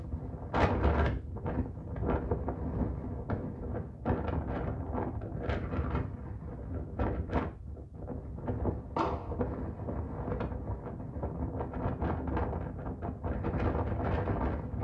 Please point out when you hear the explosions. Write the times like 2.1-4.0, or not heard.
8.9-9.3.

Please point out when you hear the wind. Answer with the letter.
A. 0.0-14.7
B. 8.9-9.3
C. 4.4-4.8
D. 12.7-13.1
A.